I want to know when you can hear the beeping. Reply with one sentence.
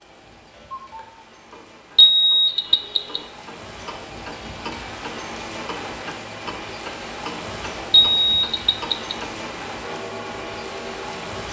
The beeping can be heard from 1.9 to 3.2 s and from 7.9 to 9.2 s.